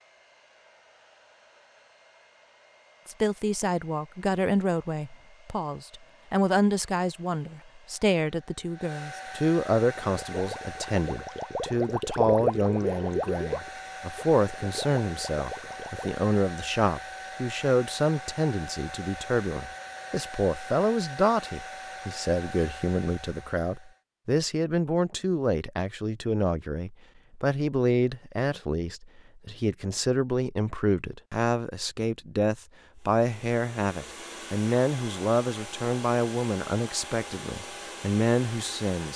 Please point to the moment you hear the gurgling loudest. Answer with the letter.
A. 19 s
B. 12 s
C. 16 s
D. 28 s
B.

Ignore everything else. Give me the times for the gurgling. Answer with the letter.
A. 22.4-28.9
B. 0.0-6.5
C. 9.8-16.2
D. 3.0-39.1
C.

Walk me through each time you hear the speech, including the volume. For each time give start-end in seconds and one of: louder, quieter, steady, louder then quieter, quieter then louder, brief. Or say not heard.
3.0-39.1 steady.